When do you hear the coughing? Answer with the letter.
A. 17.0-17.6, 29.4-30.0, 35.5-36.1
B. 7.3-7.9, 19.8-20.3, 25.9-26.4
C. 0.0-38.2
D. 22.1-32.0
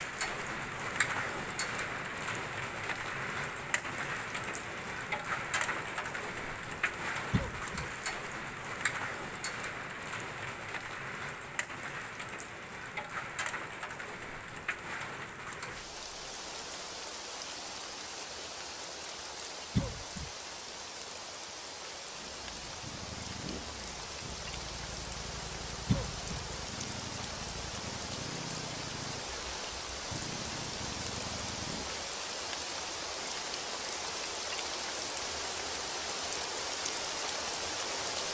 B.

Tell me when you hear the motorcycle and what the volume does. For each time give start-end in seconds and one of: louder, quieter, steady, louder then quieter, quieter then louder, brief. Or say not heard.
22.1-32.0 steady.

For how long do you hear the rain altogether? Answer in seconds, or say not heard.
38 s.